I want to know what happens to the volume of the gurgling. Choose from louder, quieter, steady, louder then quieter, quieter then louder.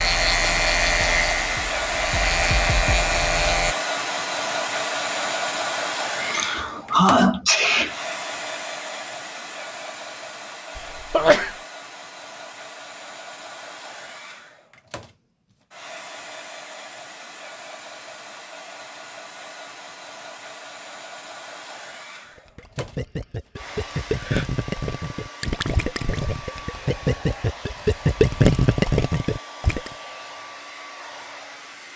louder.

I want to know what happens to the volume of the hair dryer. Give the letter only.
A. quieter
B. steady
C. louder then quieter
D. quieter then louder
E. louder
A.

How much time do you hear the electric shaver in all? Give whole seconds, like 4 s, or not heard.
4 s.